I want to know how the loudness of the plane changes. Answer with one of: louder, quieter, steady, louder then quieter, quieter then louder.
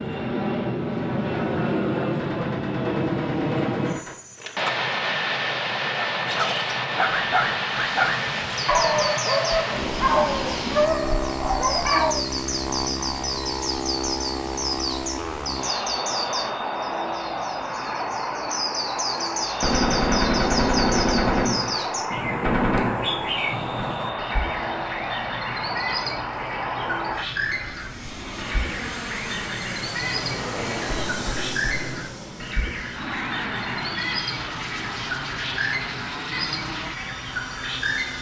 quieter.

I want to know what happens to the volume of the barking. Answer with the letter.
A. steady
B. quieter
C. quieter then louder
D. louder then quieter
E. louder
A.